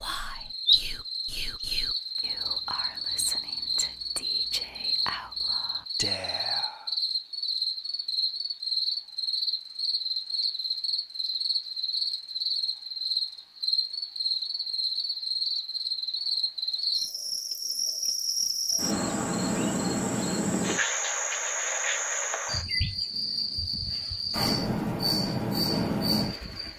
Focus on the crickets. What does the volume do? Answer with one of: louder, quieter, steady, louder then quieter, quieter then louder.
steady.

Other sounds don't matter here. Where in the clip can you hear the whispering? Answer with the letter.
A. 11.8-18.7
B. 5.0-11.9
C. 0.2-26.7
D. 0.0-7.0
D.